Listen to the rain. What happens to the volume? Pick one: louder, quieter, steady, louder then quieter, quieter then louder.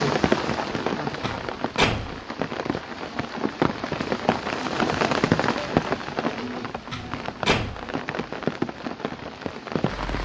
louder then quieter.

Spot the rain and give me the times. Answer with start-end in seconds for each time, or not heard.
0.0-10.1.